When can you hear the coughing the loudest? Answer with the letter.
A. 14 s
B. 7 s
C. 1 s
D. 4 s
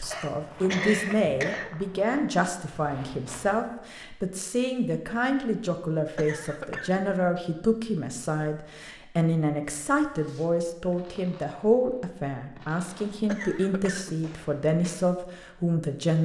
C.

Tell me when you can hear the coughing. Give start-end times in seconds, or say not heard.
0.1-1.7, 6.2-7.0, 13.2-14.2.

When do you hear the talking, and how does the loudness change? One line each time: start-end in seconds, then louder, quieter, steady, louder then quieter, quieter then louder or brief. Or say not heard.
0.0-16.2 steady.